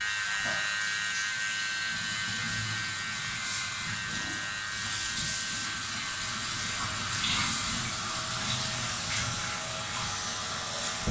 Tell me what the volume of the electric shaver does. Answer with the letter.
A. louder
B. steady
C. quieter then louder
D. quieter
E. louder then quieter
D.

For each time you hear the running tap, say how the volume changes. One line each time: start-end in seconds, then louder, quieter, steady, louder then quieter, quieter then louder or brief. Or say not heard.
0.0-11.0 louder.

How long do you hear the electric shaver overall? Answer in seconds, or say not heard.
11 s.